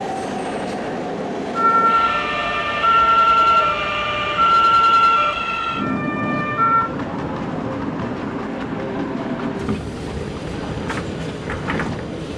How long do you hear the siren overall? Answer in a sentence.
The siren can be heard for 5 seconds in total.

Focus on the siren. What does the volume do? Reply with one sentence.
The loudness of the siren goes up, then down.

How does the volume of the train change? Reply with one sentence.
The loudness of the train stays about the same.